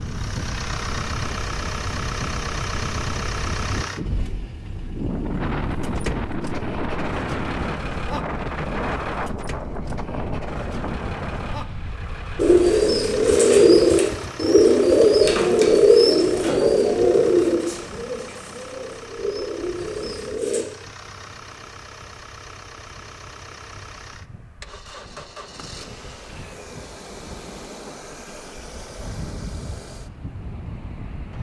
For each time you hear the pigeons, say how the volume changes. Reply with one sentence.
You can hear the pigeons from 12.3 to 20.6 s, getting quieter.